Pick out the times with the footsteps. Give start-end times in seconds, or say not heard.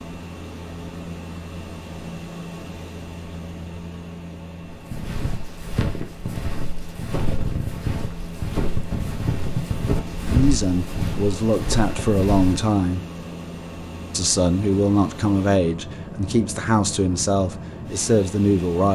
4.7-12.8.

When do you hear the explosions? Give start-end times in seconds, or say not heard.
not heard.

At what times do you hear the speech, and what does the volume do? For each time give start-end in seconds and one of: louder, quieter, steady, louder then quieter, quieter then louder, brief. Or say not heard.
10.2-13.1 brief
14.1-18.9 steady.